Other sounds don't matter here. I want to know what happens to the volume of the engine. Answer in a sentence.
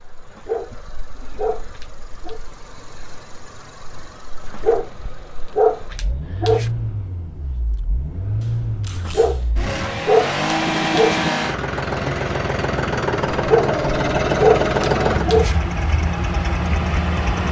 The volume of the engine goes up.